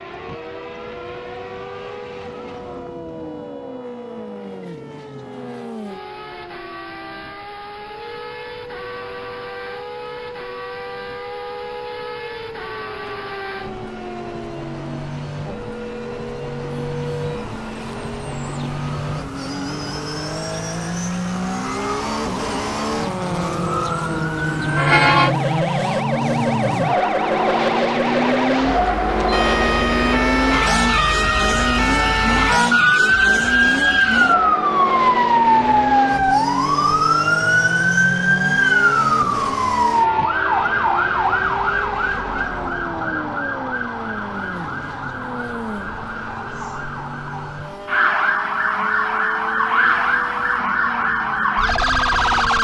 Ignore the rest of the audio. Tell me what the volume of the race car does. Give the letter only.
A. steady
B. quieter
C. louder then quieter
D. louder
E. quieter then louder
C.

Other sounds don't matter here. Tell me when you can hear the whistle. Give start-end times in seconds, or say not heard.
not heard.